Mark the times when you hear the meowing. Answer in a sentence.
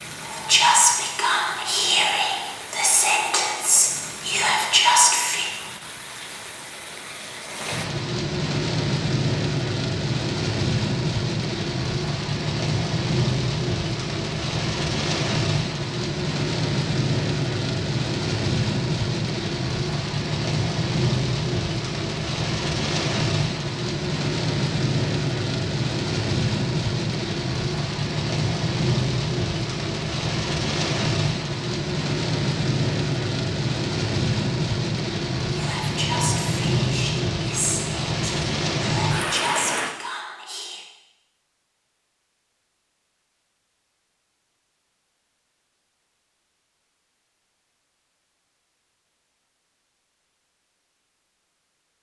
You can't hear the meowing here.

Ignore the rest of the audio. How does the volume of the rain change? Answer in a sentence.
The volume of the rain goes up.